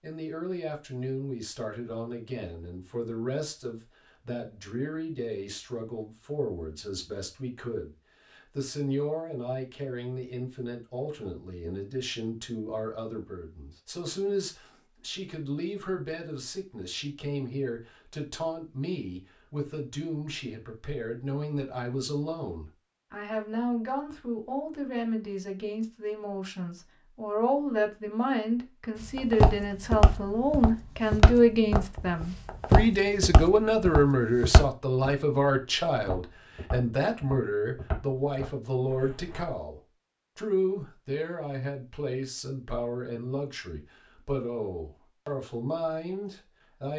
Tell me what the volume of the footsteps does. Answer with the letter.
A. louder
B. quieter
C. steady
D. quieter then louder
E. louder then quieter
B.